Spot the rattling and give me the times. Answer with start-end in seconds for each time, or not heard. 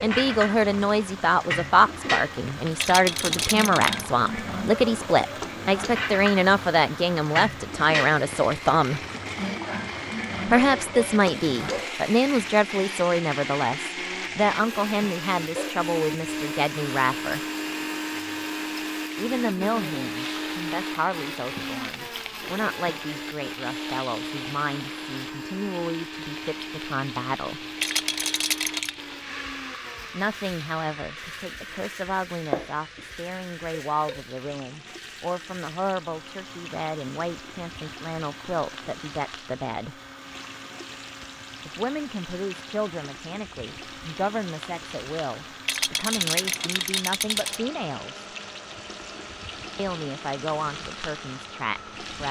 2.8-4.1, 27.8-28.9, 45.6-47.6.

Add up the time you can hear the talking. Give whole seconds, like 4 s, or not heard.
43 s.